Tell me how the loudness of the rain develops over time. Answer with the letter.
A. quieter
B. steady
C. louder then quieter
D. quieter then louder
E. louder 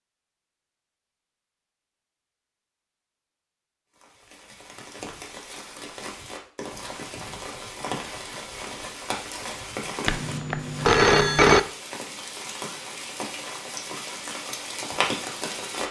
E.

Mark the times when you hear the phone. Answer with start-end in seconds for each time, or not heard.
10.1-11.6.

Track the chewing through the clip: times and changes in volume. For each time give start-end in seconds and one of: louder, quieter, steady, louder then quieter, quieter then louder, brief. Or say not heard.
not heard.